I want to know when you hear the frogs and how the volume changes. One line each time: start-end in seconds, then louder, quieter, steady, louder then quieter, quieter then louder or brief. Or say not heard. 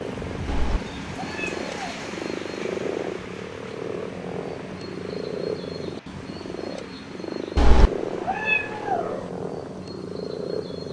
0.0-10.8 steady.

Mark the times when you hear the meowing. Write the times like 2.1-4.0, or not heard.
0.5-2.1, 7.5-9.2.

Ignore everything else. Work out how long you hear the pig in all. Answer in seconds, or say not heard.
not heard.